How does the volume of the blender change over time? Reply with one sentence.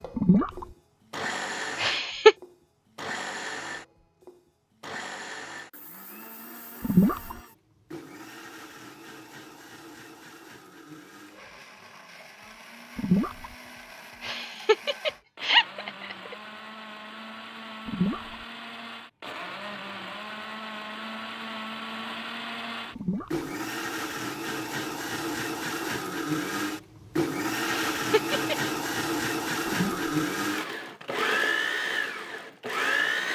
The volume of the blender goes down, then up.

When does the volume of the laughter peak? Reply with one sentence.
The loudest moment of the laughter is at 2 seconds.